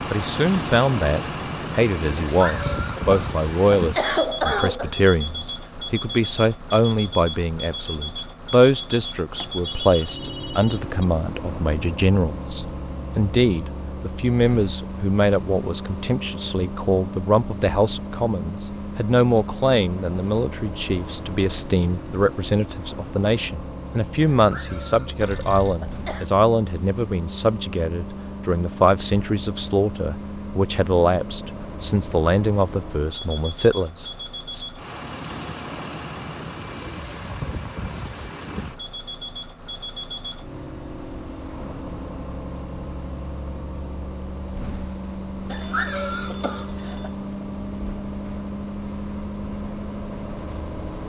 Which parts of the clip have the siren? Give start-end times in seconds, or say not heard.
not heard.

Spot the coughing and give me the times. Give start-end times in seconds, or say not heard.
2.2-4.9, 24.3-26.3, 45.5-47.1.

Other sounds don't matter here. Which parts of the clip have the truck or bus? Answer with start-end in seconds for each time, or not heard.
0.0-51.0.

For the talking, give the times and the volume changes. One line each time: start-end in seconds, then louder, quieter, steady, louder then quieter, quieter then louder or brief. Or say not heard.
0.1-34.6 steady.